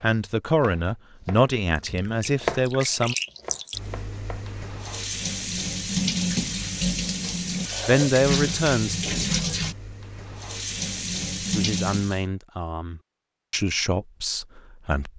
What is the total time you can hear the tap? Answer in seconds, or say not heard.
10 s.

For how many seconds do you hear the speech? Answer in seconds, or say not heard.
8 s.